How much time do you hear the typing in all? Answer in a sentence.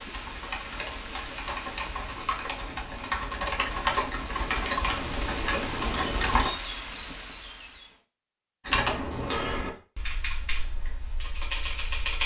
You can hear the typing for 10 seconds altogether.